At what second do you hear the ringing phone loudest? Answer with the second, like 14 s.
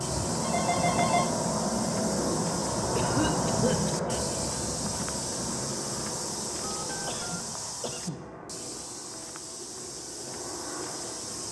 1 s.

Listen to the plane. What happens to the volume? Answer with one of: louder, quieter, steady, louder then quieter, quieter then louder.
quieter.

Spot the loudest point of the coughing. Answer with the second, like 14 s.
3 s.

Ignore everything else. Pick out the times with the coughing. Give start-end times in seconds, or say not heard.
3.0-4.2, 7.0-8.3.